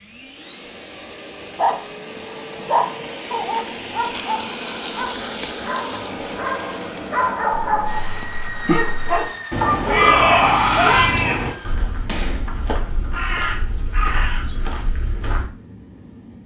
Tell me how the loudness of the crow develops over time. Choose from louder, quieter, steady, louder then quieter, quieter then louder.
louder then quieter.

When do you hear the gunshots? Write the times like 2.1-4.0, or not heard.
12.1-12.6.